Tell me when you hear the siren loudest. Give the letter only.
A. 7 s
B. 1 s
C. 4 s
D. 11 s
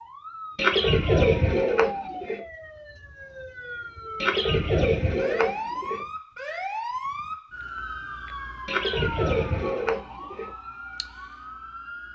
A.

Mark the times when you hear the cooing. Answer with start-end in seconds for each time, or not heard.
0.6-2.4, 4.2-6.0, 8.7-10.5.